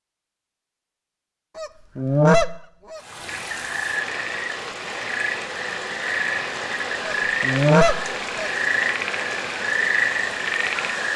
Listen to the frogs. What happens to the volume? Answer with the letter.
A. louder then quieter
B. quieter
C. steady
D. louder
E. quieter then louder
D.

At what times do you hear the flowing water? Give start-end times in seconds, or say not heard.
3.0-11.1.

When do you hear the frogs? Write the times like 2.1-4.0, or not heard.
3.2-11.1.